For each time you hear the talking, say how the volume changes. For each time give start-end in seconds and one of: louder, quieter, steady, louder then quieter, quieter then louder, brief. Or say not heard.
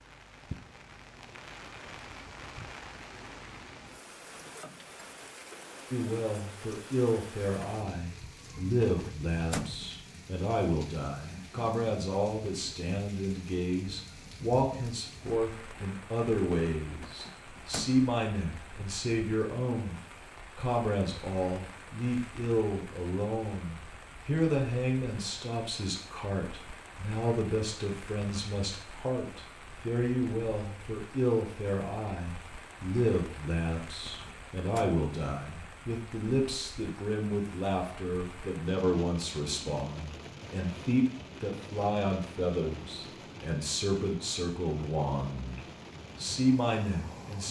5.9-47.4 steady.